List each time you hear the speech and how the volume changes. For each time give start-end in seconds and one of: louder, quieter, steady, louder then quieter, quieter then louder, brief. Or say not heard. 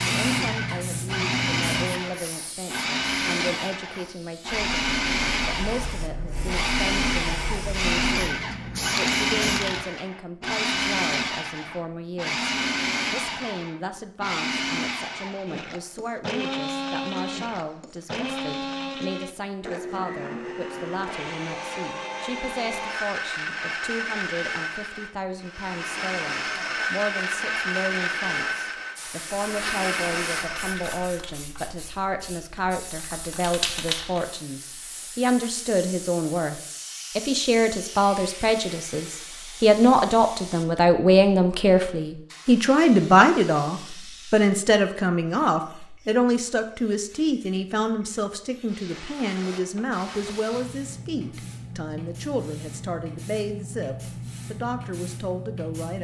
0.1-12.5 steady
13.1-55.9 louder then quieter.